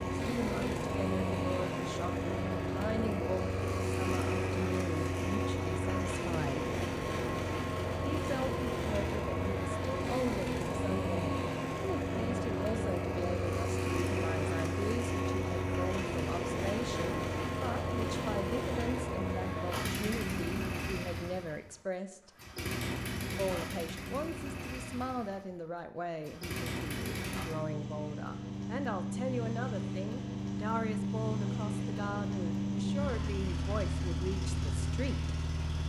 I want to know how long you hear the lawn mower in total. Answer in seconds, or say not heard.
36 s.